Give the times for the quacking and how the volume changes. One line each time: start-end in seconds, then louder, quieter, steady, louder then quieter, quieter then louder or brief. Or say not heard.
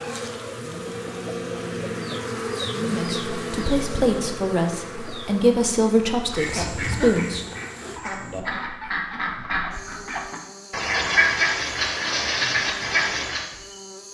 6.2-13.4 louder.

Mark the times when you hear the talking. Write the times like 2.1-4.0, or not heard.
2.7-7.5.